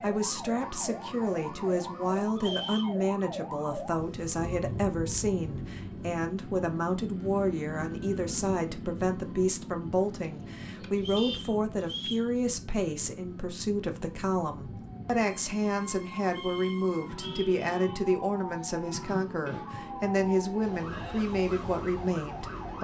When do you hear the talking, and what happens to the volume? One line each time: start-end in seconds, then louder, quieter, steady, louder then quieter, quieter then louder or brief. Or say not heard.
0.0-22.7 steady.